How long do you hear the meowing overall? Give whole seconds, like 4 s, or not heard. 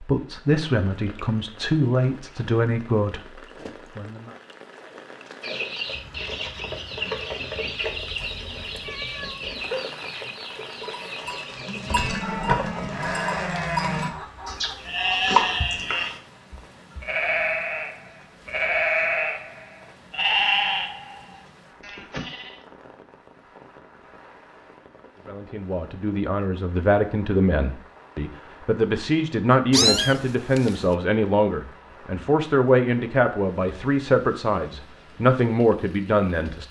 2 s.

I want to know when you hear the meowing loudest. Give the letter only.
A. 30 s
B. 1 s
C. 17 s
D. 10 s
A.